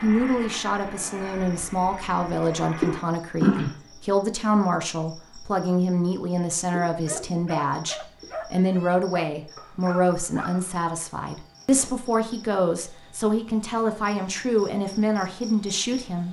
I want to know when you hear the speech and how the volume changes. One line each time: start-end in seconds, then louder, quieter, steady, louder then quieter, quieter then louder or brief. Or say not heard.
0.0-16.2 steady.